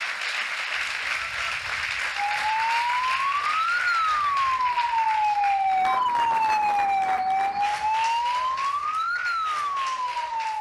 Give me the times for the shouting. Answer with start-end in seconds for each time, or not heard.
not heard.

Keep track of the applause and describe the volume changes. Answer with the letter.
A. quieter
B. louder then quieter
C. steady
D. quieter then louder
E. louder
A.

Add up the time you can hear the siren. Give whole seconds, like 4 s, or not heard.
8 s.